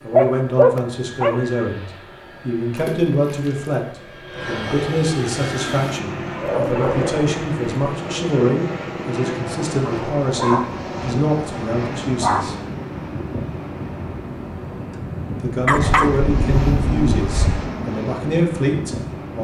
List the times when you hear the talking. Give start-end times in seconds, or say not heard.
0.0-12.6, 15.4-19.3.